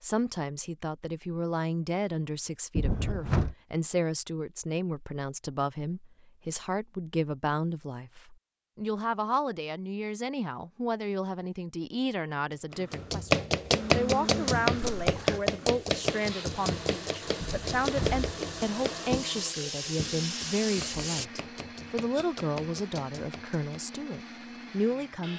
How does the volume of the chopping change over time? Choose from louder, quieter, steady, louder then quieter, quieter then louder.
quieter.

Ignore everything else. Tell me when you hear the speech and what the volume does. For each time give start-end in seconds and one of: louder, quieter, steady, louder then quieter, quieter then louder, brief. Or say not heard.
0.0-25.3 steady.